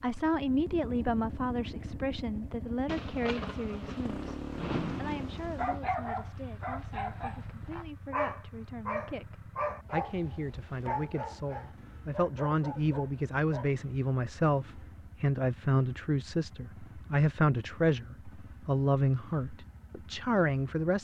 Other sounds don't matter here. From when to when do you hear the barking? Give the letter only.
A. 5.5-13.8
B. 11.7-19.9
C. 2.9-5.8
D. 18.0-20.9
A.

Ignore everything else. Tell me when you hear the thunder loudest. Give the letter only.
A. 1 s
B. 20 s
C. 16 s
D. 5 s
D.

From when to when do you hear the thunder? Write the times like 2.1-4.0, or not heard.
2.9-5.8.